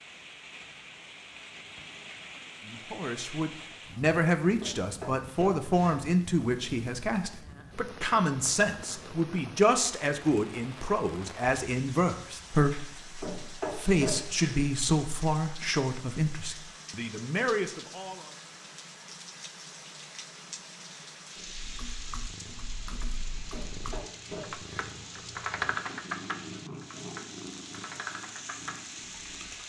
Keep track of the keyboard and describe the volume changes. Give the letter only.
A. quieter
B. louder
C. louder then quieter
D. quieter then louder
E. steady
C.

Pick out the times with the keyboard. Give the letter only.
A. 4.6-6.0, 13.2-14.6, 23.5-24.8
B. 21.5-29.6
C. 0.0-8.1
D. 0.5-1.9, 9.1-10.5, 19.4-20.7
B.